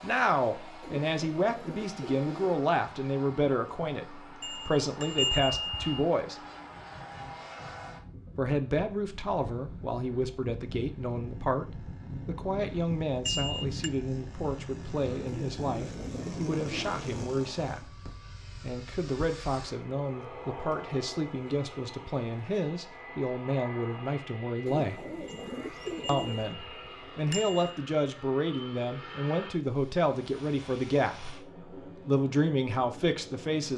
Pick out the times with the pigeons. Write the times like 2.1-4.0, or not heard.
0.8-2.6, 15.2-17.1, 24.6-26.6.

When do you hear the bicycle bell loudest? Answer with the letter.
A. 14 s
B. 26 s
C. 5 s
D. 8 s
C.